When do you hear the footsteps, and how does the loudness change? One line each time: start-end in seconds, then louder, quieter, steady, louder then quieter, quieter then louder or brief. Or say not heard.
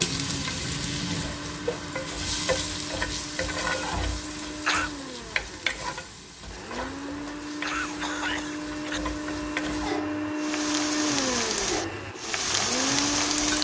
not heard.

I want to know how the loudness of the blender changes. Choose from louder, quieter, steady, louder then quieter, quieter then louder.
louder.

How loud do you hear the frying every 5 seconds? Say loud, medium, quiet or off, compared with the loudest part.
loud, medium, loud.